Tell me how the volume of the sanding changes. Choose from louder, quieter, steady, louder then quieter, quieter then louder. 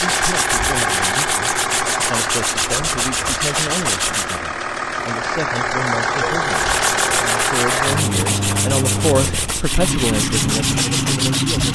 steady.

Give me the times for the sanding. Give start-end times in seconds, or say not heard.
0.0-4.4, 6.5-11.7.